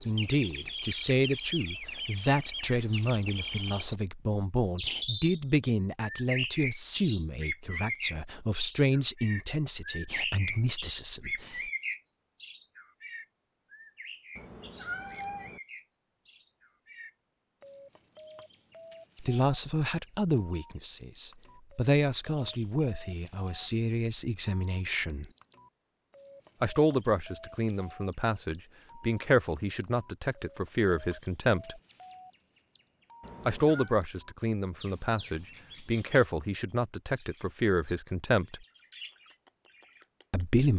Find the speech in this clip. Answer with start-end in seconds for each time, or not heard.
0.1-11.7, 19.2-25.2, 26.6-31.8, 33.5-38.6, 40.3-40.7.